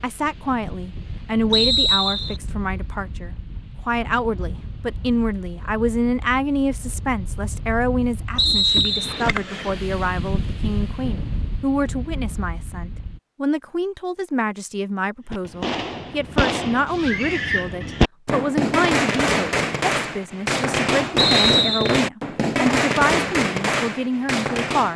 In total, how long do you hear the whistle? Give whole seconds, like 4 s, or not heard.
3 s.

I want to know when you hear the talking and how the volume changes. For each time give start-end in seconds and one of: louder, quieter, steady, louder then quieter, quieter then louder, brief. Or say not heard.
0.0-24.9 steady.